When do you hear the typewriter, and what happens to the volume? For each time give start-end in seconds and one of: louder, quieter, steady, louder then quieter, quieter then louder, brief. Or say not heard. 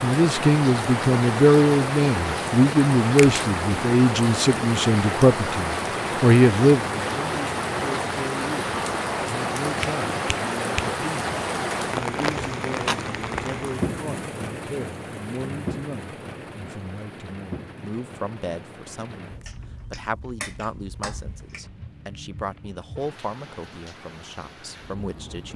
not heard.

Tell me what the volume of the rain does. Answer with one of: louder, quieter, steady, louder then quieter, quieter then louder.
quieter.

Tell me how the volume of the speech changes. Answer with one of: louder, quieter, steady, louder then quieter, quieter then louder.
quieter.